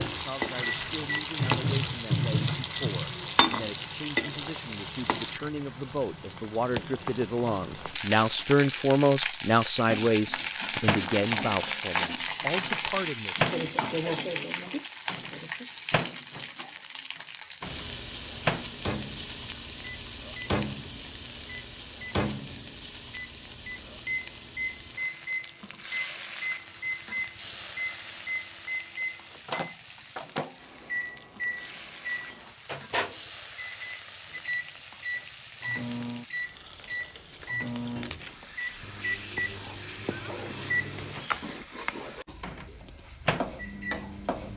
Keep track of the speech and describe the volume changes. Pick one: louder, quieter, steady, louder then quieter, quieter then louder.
louder then quieter.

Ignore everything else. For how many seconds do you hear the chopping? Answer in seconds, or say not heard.
not heard.